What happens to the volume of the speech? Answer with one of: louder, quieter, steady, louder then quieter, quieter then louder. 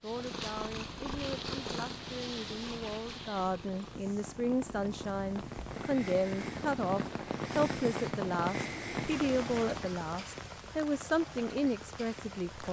louder.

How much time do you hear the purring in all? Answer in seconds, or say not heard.
10 s.